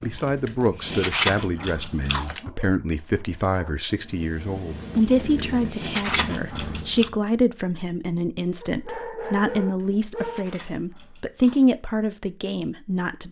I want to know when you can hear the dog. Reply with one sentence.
The dog can be heard from 2.2 to 4.0 s and from 8.6 to 10.5 s.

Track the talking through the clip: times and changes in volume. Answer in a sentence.
You can hear the talking from 0.0 to 13.2 s, at a steady volume.